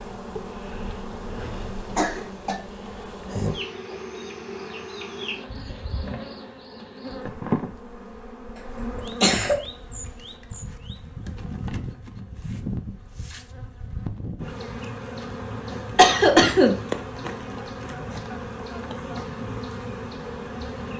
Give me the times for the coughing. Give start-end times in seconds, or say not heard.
1.4-2.5, 8.9-9.6, 15.9-16.8.